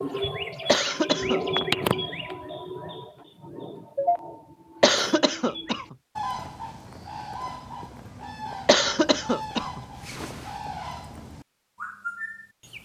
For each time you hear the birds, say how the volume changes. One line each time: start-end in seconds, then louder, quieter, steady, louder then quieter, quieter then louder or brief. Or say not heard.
0.0-12.8 quieter.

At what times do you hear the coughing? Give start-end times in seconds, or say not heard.
0.7-1.6, 4.8-6.0, 8.7-10.5.